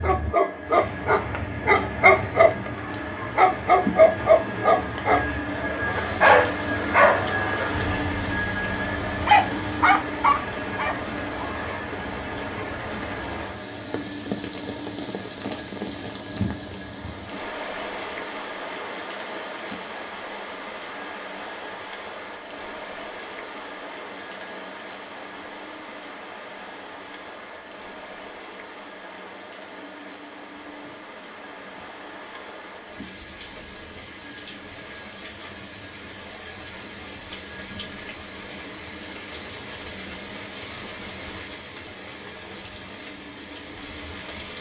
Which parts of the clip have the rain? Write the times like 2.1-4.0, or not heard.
0.0-44.5.